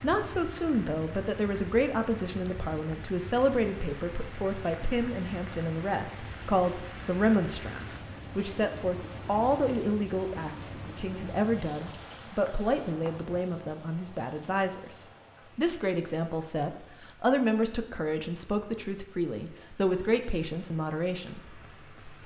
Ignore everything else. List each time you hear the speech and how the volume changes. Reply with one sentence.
You can hear the speech from 0.0 to 21.4 s, at a steady volume.